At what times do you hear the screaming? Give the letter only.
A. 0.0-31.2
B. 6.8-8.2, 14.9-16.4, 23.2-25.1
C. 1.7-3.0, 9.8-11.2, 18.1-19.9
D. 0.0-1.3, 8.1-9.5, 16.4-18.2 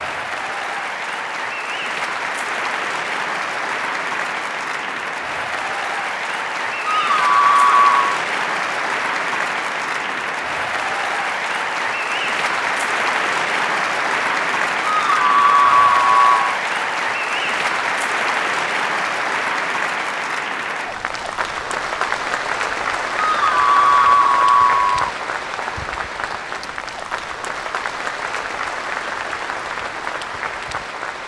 B.